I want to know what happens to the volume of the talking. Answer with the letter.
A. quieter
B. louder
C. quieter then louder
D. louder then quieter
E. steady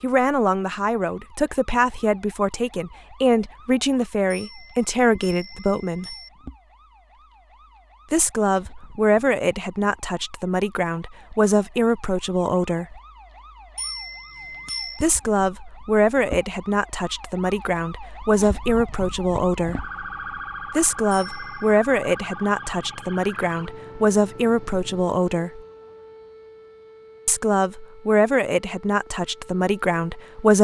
E.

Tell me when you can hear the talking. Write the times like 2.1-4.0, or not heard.
0.0-6.1, 8.1-13.0, 15.0-19.9, 20.8-25.6, 27.2-30.6.